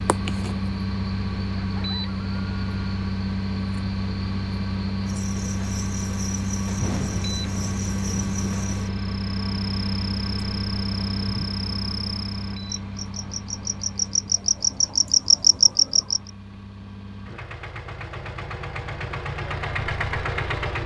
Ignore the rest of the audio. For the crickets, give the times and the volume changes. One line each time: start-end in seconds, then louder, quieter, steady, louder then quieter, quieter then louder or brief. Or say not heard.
0.0-16.3 louder.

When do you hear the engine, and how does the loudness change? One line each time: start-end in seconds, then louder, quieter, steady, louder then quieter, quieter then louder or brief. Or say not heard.
0.0-20.8 quieter then louder.